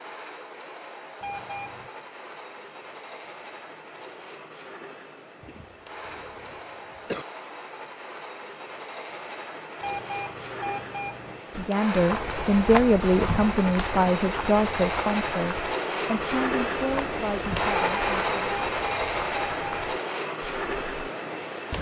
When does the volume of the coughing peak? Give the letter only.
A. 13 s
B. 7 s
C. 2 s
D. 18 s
B.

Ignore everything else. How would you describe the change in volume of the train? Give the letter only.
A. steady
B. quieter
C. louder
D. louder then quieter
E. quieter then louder
C.